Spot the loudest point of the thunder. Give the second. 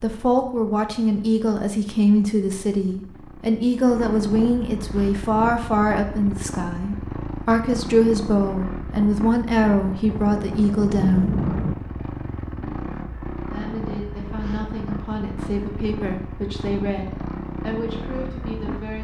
11 s.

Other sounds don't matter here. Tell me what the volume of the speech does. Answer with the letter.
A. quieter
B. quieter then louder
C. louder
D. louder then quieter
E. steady
A.